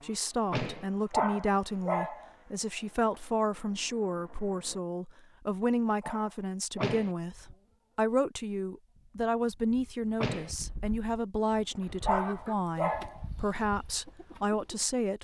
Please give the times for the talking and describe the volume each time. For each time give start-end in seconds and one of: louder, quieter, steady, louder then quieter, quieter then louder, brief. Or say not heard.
0.0-15.1 steady.